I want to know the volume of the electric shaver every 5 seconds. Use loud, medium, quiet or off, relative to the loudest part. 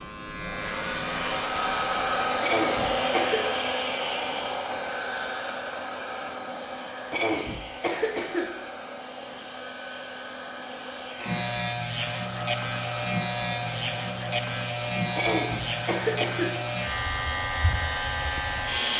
medium, off, loud, loud.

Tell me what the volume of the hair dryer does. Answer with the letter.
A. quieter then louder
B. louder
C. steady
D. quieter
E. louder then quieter
D.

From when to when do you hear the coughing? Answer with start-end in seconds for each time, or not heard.
2.4-3.4, 7.1-8.5, 15.2-16.6.